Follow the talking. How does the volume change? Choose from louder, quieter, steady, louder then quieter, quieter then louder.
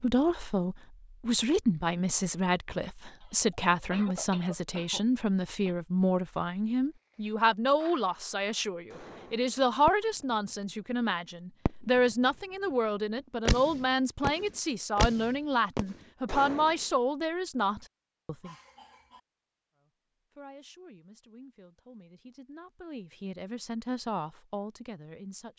quieter.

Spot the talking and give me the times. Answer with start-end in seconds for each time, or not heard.
0.0-18.6, 19.8-25.5.